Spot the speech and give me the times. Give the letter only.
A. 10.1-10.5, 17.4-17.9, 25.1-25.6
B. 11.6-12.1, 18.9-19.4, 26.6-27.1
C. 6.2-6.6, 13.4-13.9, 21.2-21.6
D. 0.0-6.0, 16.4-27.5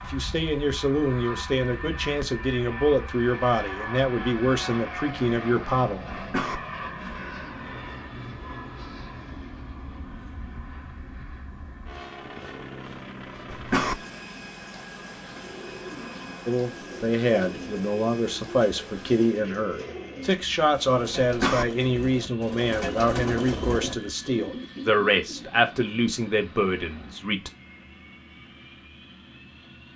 D.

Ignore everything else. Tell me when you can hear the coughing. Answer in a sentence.
You can hear the coughing from 6.2 to 6.6 s, from 13.4 to 13.9 s and from 21.2 to 21.6 s.